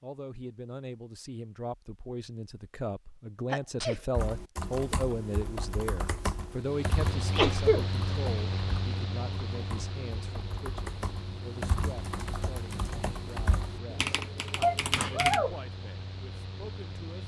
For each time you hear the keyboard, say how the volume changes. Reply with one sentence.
The keyboard can be heard from 4.2 to 15.4 s, getting quieter then louder.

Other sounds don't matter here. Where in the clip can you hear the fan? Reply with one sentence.
The fan can be heard from 6.5 to 17.2 s.